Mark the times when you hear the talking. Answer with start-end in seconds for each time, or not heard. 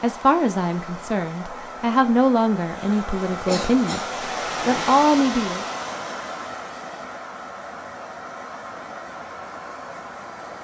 0.0-4.0, 4.7-5.7.